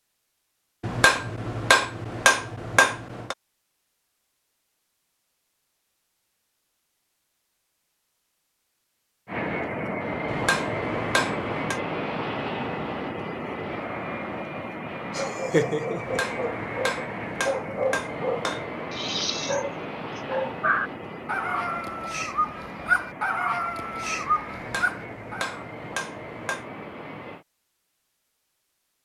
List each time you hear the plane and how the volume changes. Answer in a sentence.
You can hear the plane from 9.2 to 27.4 s, getting quieter.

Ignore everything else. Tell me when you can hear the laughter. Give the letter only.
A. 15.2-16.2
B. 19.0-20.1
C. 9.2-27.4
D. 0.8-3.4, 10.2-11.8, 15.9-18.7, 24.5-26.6
A.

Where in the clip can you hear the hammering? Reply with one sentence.
The hammering can be heard from 0.8 to 3.4 s, from 10.2 to 11.8 s, from 15.9 to 18.7 s and from 24.5 to 26.6 s.